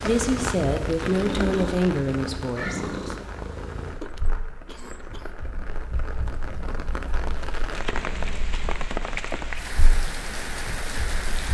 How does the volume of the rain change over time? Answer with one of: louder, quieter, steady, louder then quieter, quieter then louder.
quieter then louder.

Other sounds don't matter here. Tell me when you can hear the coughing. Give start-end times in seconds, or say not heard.
4.0-5.3.